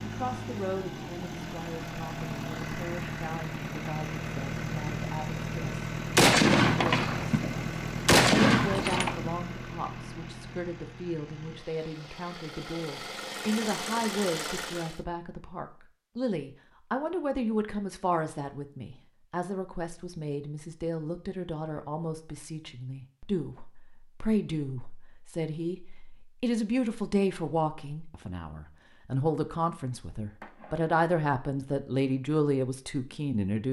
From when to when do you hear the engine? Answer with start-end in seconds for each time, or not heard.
0.0-15.1.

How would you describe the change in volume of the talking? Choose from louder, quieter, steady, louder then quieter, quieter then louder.
louder.